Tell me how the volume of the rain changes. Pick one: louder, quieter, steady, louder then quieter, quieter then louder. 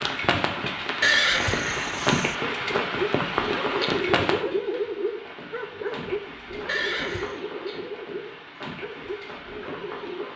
quieter.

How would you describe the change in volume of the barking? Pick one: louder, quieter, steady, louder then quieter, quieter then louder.
quieter.